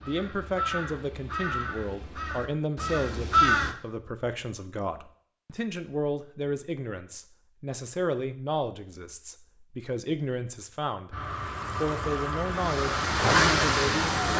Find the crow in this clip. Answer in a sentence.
You can hear the crow from 0.0 to 3.8 s and from 11.1 to 14.3 s.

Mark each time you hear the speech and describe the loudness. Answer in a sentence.
The speech can be heard from 0.0 to 11.2 s, at a steady volume; and briefly from 11.8 to 14.3 s.